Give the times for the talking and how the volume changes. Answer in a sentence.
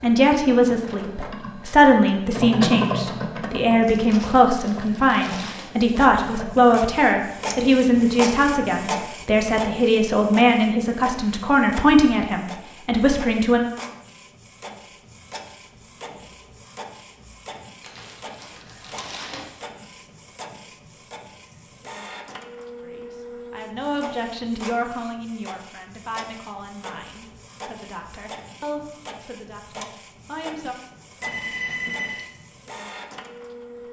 The talking can be heard from 0.0 to 13.6 s, at a steady volume; and from 22.8 to 30.8 s, getting quieter.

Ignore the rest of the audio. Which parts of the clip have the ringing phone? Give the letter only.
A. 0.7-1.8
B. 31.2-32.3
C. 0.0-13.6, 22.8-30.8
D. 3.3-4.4
B.